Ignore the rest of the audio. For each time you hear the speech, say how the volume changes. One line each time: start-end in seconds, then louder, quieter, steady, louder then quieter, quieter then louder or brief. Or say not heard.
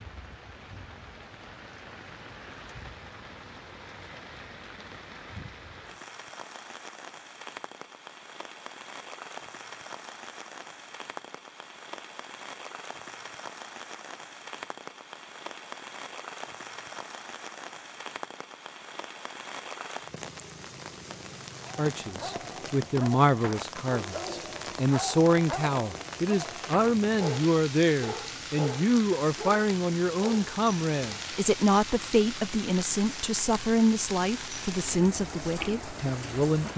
21.8-36.7 steady.